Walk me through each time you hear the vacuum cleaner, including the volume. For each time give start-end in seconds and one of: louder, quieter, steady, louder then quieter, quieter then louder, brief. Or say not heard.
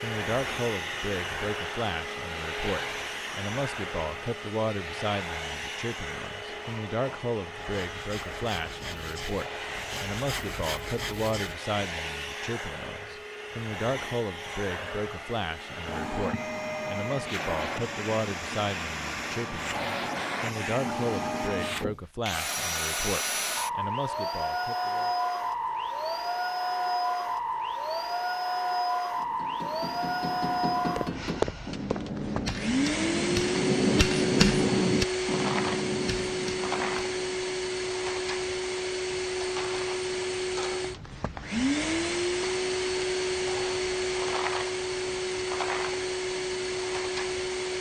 0.0-47.7 louder.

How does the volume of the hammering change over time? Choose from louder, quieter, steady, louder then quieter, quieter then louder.
louder then quieter.